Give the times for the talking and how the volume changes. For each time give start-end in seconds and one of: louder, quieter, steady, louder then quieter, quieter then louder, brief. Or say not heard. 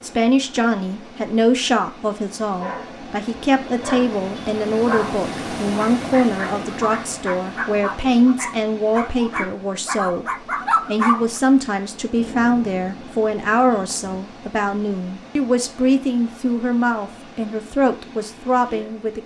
0.0-19.2 steady.